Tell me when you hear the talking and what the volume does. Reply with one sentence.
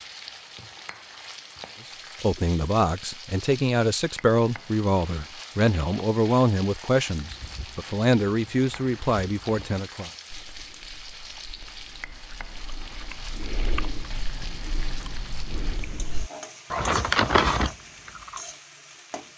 You can hear the talking from 2.2 to 10.1 s, at a steady volume.